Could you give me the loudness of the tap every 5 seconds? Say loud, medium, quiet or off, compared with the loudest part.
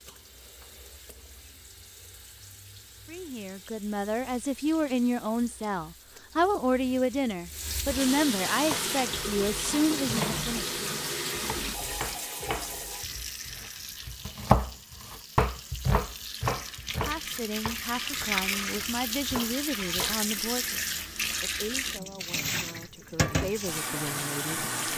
quiet, loud, loud, loud, loud.